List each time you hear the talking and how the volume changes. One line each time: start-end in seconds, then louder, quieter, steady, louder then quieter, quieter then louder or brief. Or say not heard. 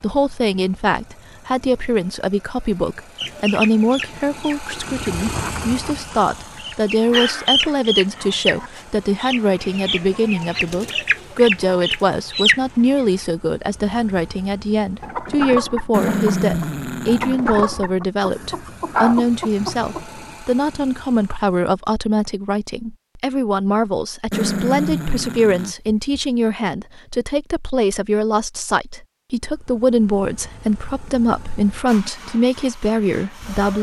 0.0-33.7 steady.